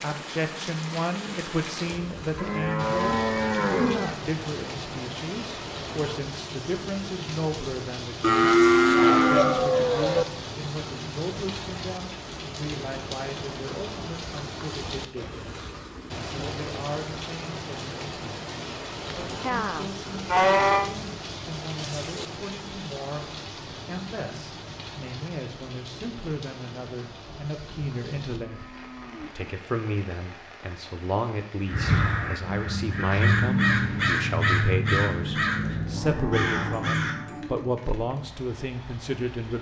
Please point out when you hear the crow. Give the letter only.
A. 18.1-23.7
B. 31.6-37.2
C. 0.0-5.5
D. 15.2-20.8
B.